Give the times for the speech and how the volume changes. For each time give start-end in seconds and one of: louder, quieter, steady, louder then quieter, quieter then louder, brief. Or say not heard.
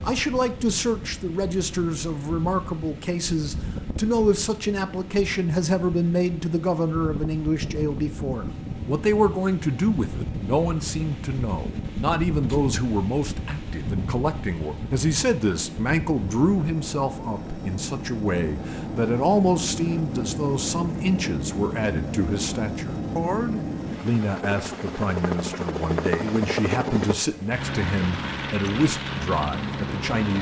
0.0-30.3 steady.